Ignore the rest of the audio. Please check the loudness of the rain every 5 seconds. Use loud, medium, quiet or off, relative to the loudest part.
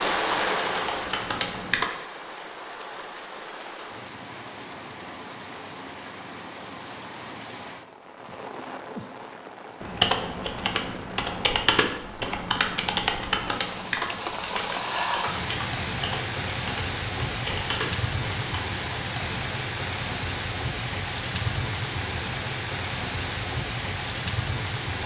loud, medium, medium, loud, loud.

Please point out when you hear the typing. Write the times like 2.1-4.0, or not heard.
0.1-1.9, 9.8-18.6.